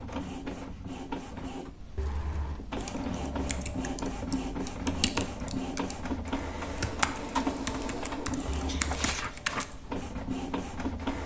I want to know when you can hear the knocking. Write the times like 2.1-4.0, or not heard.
1.9-2.6, 8.4-9.2.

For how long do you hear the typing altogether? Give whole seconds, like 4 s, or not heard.
7 s.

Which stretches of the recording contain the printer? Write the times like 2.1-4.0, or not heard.
0.0-11.2.